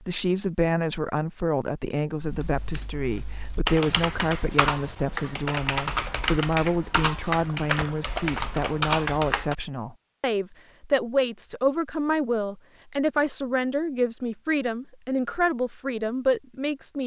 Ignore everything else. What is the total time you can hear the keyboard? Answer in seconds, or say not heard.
7 s.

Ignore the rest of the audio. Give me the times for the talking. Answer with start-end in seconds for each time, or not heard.
0.0-17.0.